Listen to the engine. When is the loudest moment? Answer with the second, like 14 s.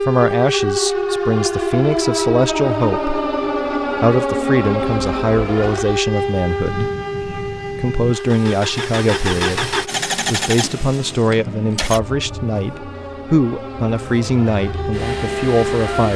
10 s.